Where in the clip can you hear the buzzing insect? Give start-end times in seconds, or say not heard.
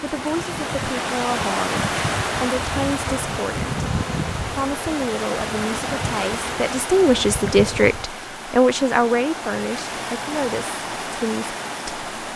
0.0-8.1.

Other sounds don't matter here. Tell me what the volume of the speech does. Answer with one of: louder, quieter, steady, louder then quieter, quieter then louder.
louder then quieter.